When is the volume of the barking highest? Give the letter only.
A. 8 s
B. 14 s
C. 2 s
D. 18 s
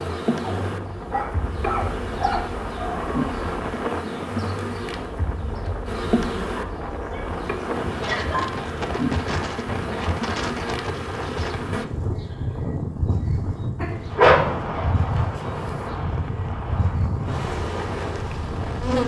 B.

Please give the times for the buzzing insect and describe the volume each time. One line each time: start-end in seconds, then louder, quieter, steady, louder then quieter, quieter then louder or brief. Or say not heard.
0.0-19.0 steady.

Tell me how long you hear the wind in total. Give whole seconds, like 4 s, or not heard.
19 s.